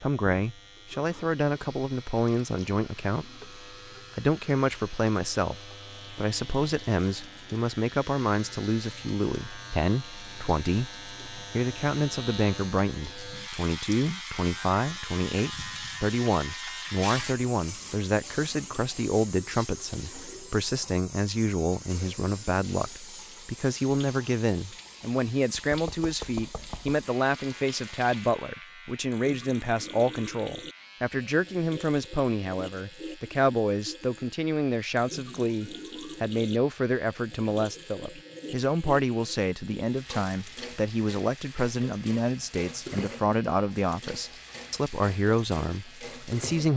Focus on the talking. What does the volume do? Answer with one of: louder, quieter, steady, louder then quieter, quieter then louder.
steady.